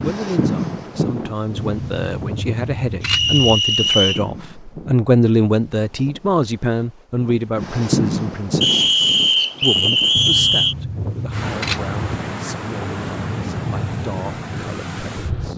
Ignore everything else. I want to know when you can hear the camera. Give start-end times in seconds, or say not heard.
1.6-3.5, 10.2-11.9.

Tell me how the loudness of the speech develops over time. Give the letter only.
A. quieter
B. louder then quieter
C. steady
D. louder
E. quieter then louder
B.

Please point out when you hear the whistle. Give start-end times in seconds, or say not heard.
3.0-4.2, 8.6-10.8.